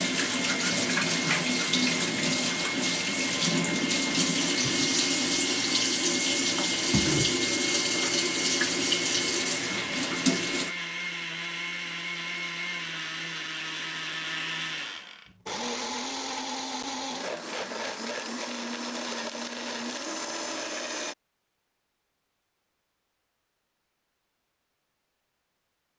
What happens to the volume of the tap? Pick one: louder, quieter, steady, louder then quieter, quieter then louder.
steady.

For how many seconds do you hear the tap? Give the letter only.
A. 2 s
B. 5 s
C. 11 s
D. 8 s
C.